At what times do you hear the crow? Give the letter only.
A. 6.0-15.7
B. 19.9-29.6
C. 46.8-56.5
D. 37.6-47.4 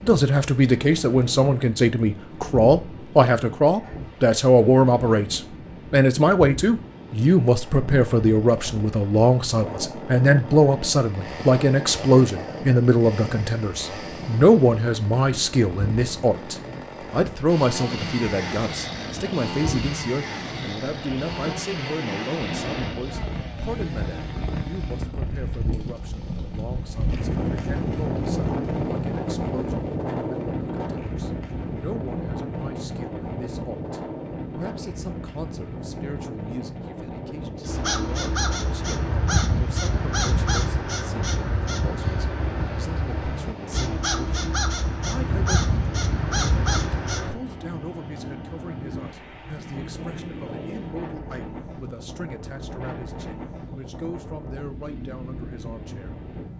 D.